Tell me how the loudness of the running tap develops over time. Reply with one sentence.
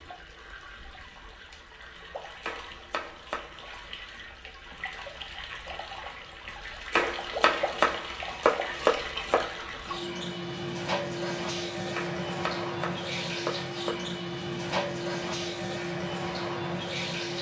The volume of the running tap goes up.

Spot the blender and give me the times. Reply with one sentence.
You can't hear the blender here.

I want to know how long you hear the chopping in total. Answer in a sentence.
You can hear the chopping for 6 seconds altogether.